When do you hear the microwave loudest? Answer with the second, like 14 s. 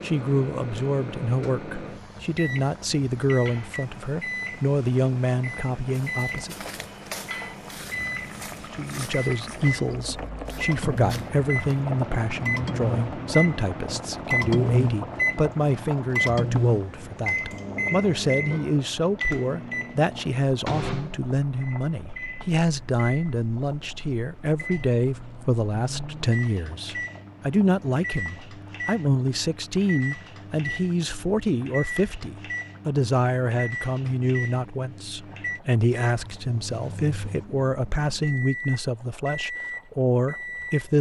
15 s.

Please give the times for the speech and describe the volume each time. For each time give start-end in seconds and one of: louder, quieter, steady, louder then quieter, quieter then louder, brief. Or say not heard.
0.0-6.5 steady
8.7-40.9 steady.